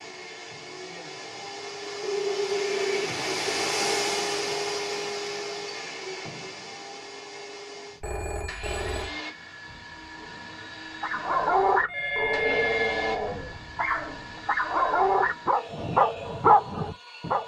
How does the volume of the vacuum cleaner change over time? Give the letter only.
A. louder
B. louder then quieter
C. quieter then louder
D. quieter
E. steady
D.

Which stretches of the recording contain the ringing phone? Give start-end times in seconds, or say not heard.
2.0-3.5, 8.0-9.2, 11.8-13.2.